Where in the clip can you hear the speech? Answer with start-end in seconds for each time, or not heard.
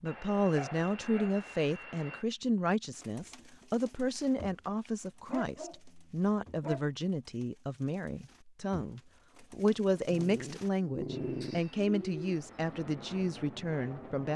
0.0-14.3.